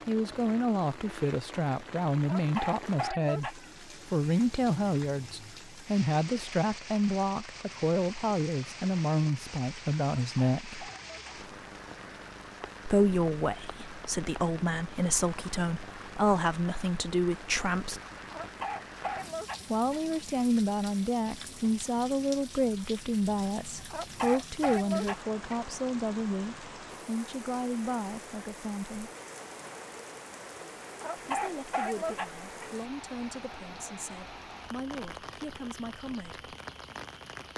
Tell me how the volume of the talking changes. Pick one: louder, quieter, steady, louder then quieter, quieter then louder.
quieter.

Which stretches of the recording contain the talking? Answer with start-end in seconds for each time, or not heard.
0.1-10.9, 12.8-18.0, 19.7-29.1, 31.4-36.5.